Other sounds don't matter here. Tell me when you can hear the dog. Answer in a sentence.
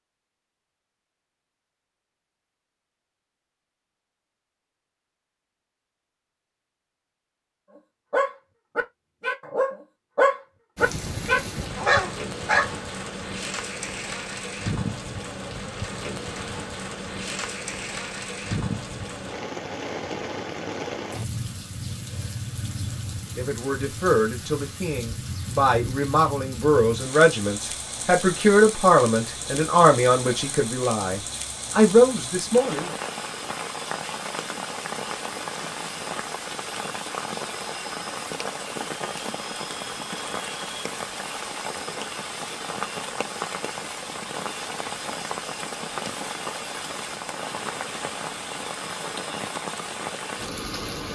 The dog can be heard from 8.1 to 12.7 s.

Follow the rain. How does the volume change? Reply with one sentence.
The loudness of the rain stays about the same.